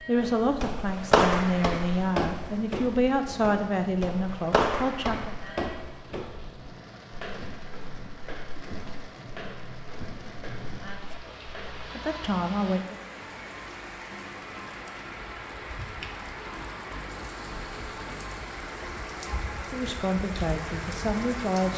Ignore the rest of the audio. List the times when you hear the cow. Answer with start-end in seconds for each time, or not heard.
not heard.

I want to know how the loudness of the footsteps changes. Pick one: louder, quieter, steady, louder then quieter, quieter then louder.
quieter.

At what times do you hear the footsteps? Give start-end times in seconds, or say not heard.
0.1-11.9.